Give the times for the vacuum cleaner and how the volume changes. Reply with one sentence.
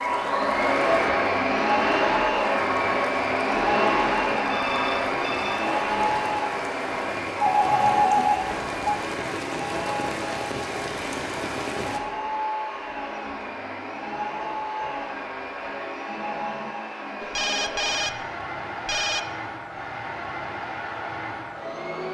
The vacuum cleaner can be heard from 0.0 to 22.0 s, getting quieter.